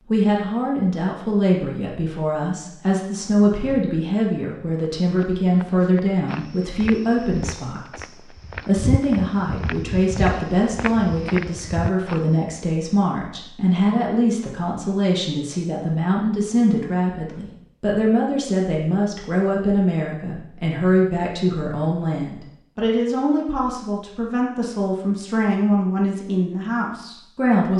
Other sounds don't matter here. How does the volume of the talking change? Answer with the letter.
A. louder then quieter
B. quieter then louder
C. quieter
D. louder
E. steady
E.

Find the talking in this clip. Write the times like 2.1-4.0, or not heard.
0.1-27.7.